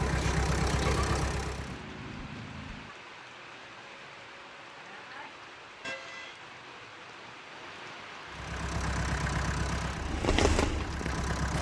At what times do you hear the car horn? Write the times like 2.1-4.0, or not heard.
1.6-3.0, 5.8-6.5.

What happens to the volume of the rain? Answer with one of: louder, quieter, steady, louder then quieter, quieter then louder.
louder.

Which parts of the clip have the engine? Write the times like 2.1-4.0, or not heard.
0.0-1.8, 8.2-11.5.